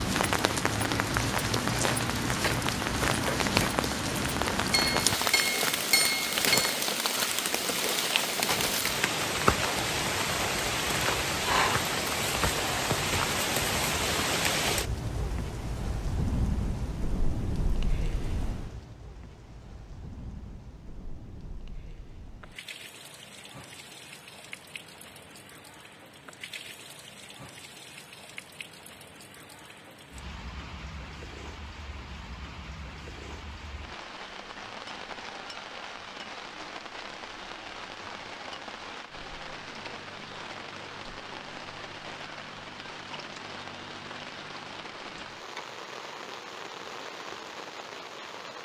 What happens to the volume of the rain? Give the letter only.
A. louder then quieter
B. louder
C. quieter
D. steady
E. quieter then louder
E.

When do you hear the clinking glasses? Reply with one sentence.
You can hear the clinking glasses from 4.7 to 6.8 s.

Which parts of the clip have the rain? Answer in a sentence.
You can hear the rain from 0.0 to 48.6 s.